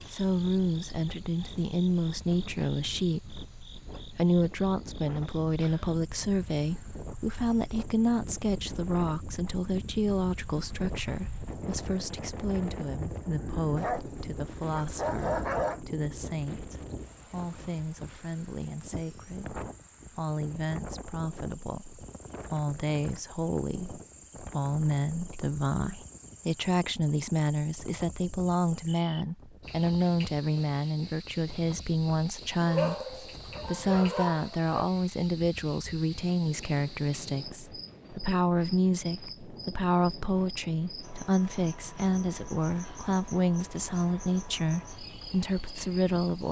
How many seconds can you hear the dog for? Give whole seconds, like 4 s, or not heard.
4 s.